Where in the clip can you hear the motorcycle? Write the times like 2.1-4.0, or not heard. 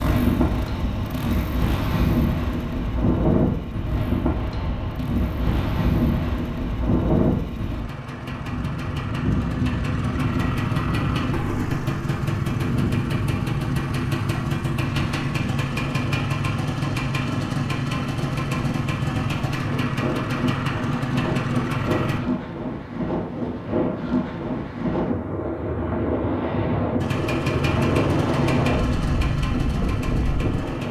0.0-22.2, 27.0-30.8.